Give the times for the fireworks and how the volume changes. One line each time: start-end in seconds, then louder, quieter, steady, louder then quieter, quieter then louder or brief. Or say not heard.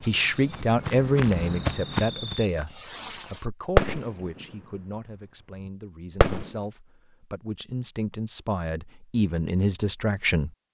0.0-4.7 quieter then louder
5.5-6.6 brief.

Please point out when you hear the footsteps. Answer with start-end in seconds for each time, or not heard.
0.0-2.8.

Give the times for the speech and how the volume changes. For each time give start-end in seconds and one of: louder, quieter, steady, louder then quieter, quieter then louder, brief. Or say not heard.
0.1-10.5 quieter then louder.